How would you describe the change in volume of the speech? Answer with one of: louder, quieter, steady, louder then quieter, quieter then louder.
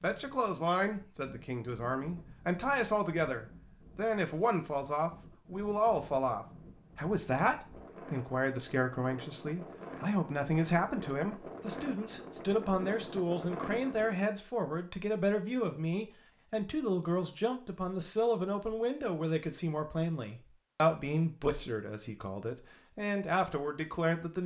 steady.